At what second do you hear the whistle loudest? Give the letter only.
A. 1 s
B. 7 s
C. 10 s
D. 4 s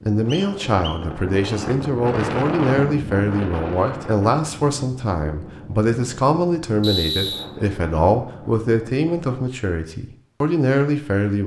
B.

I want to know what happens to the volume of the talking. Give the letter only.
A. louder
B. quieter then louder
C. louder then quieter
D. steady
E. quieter
D.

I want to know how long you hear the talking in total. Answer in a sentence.
You can hear the talking for 11 seconds altogether.